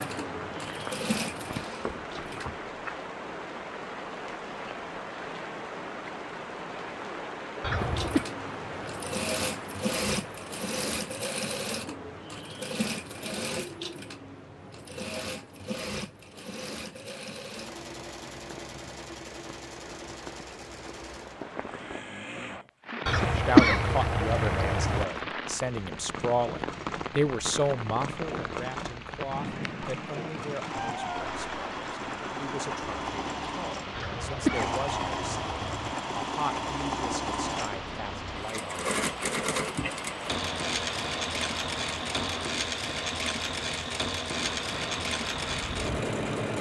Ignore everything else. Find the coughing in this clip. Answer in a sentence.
The coughing can be heard from 7.6 to 8.2 s, from 23.1 to 25.1 s and from 34.0 to 36.0 s.